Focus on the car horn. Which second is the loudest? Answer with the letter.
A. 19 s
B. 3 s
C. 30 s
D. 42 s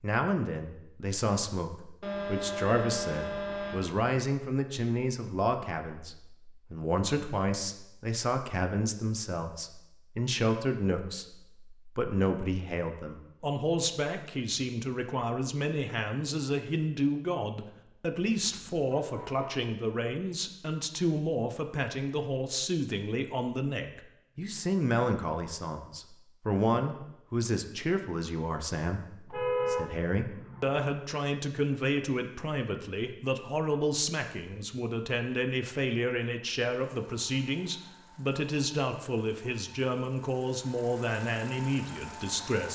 C.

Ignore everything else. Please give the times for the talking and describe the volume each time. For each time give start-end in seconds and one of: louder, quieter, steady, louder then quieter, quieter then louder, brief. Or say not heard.
0.0-42.6 steady.